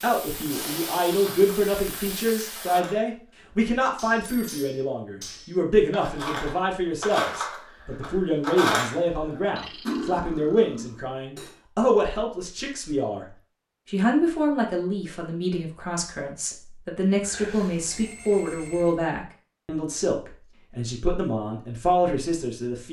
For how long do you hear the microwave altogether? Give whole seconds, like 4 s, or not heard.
not heard.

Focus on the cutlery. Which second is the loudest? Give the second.
9 s.